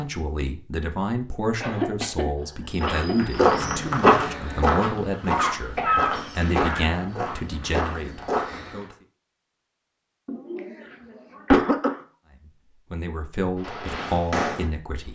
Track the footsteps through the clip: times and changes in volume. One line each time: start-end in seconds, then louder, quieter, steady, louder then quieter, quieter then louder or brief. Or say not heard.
2.8-8.8 quieter.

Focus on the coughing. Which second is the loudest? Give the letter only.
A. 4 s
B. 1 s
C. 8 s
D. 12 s
D.